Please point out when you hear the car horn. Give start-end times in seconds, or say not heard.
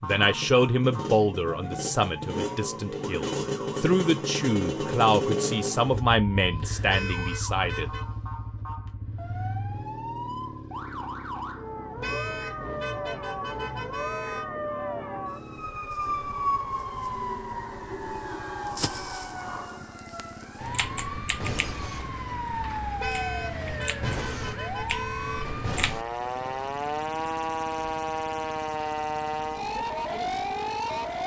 6.9-8.1, 12.0-14.4, 23.0-25.5.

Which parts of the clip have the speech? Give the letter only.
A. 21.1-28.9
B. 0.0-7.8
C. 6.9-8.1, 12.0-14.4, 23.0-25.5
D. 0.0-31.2
B.